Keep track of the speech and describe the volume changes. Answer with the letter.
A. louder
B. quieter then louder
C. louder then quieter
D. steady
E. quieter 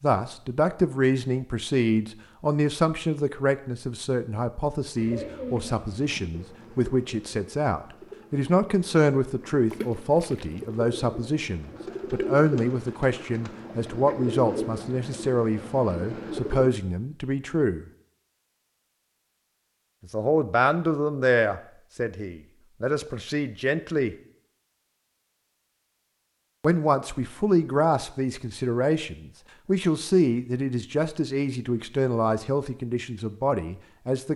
D.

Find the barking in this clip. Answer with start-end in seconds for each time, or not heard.
not heard.